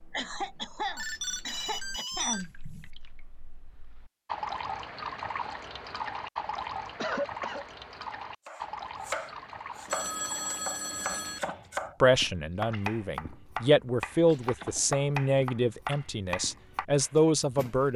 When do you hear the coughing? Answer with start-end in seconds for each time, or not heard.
0.1-2.5, 7.0-7.7, 14.3-15.0.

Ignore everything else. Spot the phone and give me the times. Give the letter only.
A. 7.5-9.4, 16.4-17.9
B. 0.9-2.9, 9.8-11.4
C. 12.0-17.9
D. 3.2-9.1
B.